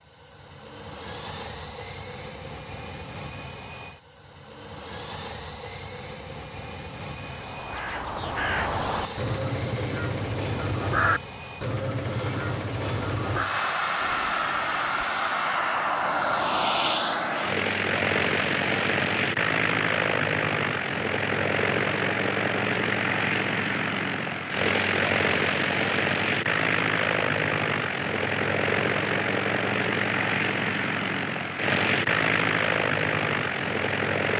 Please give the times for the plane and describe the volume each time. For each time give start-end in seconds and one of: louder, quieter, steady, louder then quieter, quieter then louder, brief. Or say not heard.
0.0-34.3 louder.